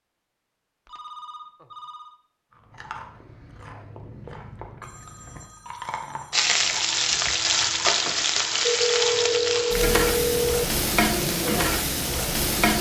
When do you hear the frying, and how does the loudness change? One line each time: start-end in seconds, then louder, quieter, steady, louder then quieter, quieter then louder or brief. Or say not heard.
6.3-12.7 steady.